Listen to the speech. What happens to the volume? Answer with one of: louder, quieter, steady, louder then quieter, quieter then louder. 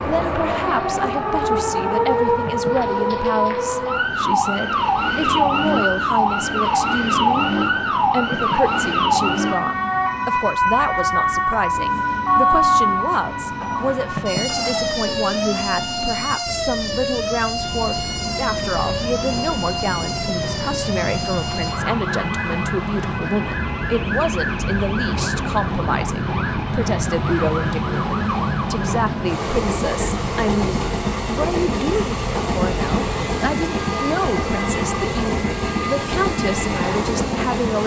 steady.